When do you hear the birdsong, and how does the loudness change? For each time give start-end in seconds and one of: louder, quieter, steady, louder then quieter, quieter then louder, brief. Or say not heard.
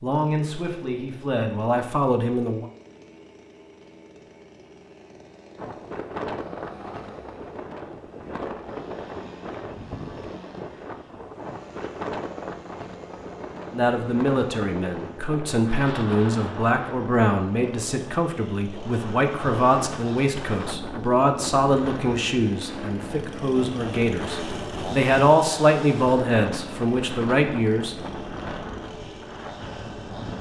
not heard.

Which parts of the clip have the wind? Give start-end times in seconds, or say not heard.
5.5-30.3.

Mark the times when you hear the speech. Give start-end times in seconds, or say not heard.
0.0-2.6, 13.7-27.9.